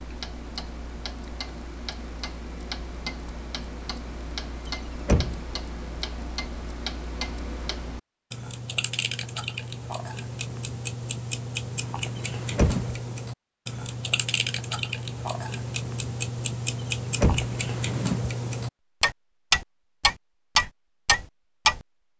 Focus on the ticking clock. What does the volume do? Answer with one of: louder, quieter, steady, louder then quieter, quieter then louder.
louder.